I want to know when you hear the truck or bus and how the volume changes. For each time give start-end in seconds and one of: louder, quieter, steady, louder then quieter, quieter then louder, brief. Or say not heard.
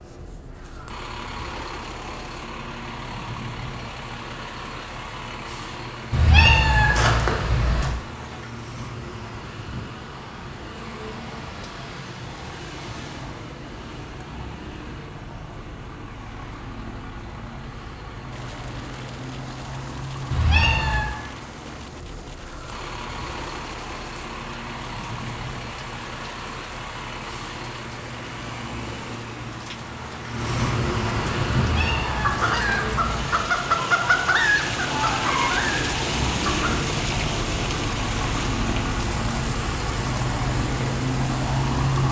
0.0-42.0 louder.